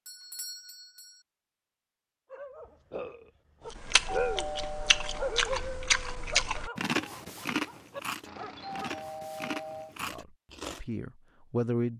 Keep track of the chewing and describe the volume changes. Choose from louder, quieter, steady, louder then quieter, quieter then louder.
louder then quieter.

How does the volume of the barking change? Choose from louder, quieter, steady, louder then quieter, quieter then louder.
louder then quieter.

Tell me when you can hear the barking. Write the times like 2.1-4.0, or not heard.
2.3-9.1.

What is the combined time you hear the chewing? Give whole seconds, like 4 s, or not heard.
7 s.